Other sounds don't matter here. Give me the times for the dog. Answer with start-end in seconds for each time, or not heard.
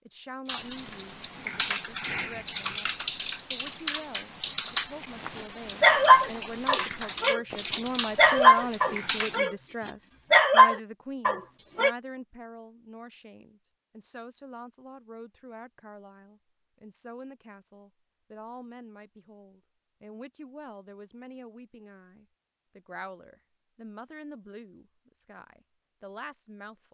5.3-11.9.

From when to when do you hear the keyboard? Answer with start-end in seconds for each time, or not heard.
0.5-9.4.